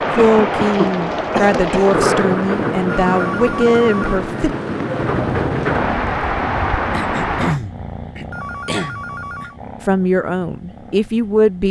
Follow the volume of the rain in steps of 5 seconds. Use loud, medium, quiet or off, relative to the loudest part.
loud, loud, off.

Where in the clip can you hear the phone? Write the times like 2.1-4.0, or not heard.
3.0-4.2, 8.3-9.6.